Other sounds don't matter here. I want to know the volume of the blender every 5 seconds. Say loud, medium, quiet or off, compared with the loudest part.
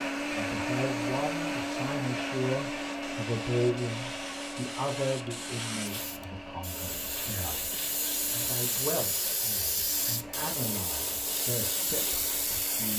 loud, medium, quiet.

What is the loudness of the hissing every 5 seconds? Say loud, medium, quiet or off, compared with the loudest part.
medium, loud, loud.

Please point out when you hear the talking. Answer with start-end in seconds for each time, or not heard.
0.3-12.9.